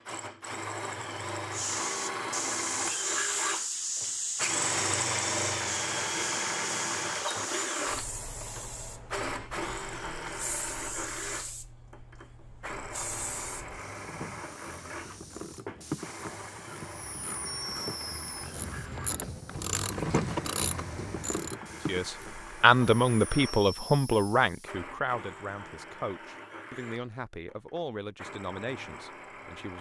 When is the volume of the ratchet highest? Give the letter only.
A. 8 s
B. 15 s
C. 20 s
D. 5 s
C.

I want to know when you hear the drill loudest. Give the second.
5 s.